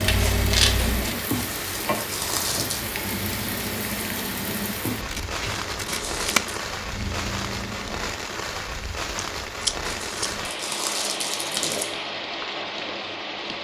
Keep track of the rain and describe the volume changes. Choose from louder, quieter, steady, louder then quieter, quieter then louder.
steady.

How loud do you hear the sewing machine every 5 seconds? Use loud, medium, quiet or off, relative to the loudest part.
loud, medium, off.